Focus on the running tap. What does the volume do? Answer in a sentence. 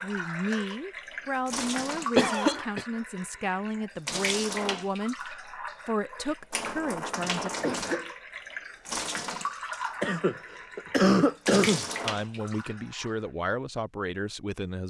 The loudness of the running tap stays about the same.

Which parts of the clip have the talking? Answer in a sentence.
The talking can be heard from 0.0 to 7.5 s and from 12.0 to 14.8 s.